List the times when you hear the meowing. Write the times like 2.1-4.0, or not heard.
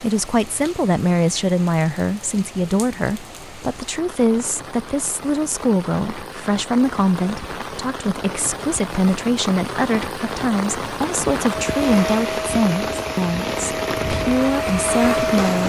not heard.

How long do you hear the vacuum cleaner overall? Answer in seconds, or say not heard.
4 s.